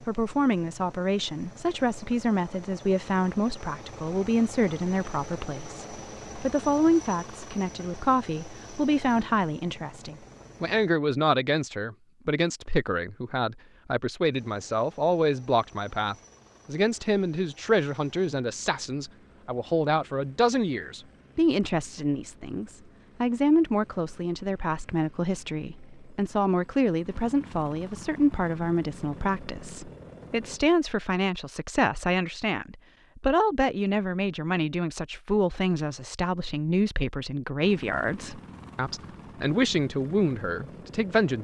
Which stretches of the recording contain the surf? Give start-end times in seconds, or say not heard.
not heard.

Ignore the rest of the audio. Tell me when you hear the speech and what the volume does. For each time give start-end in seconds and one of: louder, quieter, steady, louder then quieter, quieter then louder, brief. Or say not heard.
0.1-41.4 steady.